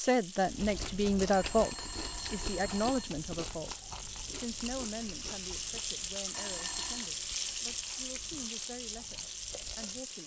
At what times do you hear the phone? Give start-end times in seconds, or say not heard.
1.3-3.1, 6.3-7.2.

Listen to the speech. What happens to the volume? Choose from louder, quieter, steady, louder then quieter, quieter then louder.
quieter.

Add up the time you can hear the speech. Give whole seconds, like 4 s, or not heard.
10 s.